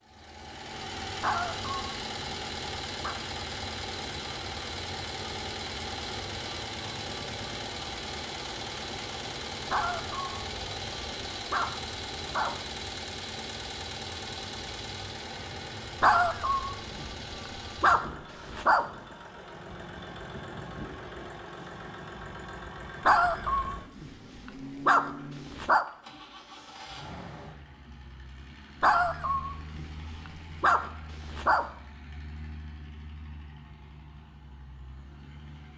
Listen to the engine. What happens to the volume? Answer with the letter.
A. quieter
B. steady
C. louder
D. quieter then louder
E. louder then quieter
A.